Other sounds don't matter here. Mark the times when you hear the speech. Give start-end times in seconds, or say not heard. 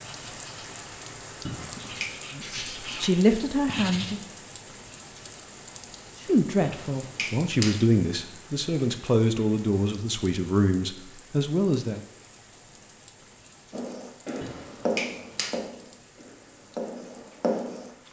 2.3-4.2, 6.2-12.0.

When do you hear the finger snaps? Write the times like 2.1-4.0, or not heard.
1.4-2.1, 6.6-7.8, 14.4-15.6.